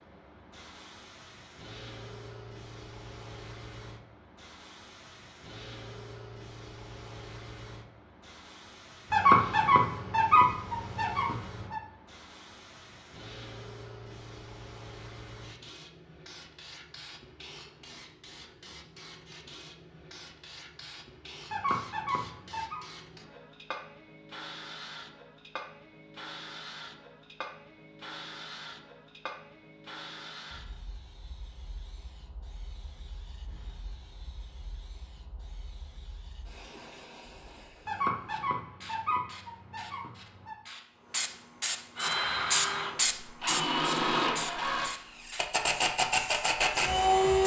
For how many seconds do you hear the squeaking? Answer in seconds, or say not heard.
7 s.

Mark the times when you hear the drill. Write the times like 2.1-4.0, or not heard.
42.0-47.4.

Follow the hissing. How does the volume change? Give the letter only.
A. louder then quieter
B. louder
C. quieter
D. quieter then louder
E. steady
B.